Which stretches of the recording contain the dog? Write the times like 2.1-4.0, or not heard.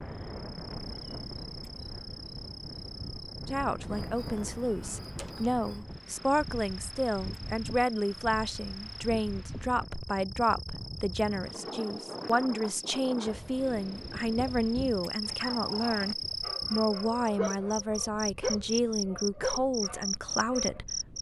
15.2-21.1.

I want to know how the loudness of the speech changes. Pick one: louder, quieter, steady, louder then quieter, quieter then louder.
steady.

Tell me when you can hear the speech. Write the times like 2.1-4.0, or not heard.
3.5-21.1.